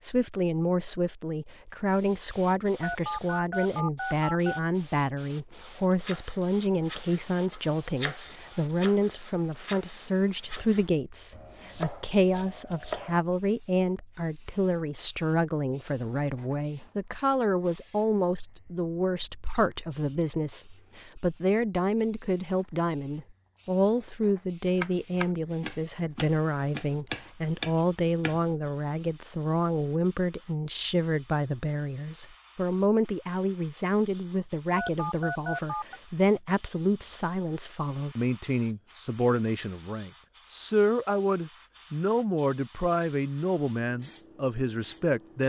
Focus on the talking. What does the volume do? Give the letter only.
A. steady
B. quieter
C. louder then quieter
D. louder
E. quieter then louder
A.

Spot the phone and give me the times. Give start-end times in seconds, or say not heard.
2.8-4.6, 34.8-36.0.